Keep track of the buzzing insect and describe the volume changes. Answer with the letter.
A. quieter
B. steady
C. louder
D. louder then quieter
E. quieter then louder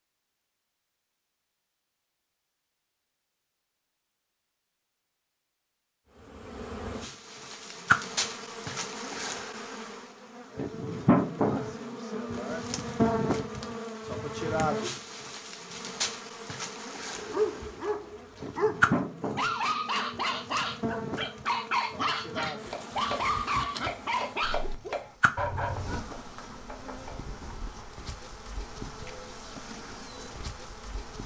A.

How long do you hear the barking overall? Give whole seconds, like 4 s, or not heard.
9 s.